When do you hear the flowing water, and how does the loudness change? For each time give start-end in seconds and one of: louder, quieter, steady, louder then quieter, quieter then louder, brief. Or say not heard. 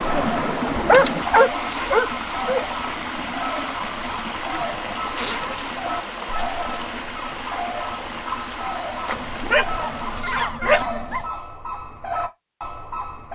0.0-10.2 quieter.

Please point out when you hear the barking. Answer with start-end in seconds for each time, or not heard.
0.8-2.6, 5.5-7.0, 9.1-11.2.